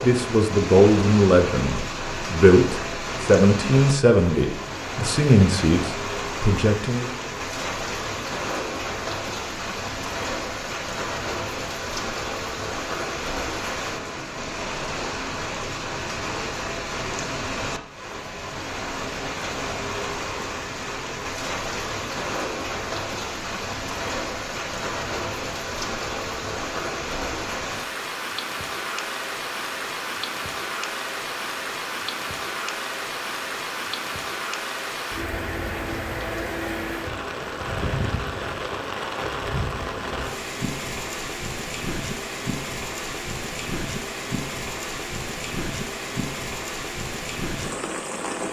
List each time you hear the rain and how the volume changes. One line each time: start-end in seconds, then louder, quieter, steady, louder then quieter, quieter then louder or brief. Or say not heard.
0.0-48.4 steady.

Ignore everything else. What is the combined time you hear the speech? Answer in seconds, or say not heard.
7 s.